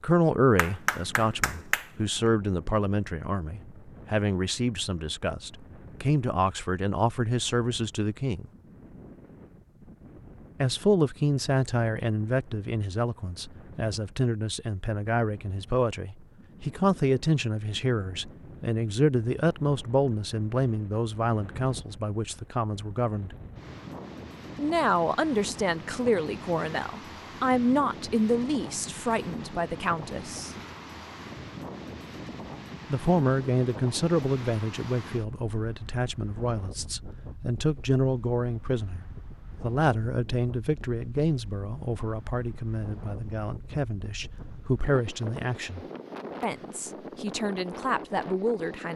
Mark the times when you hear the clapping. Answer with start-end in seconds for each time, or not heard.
0.6-1.9.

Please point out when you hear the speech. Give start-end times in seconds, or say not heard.
0.0-8.4, 10.6-23.4, 24.6-30.5, 32.9-48.9.